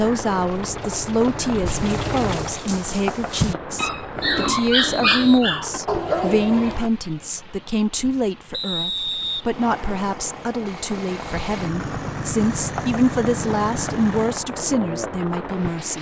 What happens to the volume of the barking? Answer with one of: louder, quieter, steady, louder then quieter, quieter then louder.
louder.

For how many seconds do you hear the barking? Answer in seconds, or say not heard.
5 s.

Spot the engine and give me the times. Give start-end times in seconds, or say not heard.
0.0-2.6, 9.4-14.5.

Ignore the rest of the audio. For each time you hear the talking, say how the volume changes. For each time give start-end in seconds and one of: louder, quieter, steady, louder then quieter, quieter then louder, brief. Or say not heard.
0.0-15.9 steady.